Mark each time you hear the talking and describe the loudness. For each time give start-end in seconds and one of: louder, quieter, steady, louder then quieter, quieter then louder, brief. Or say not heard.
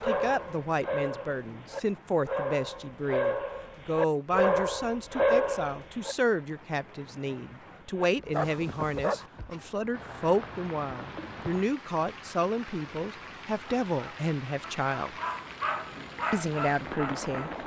0.0-15.2 steady
16.3-17.6 brief.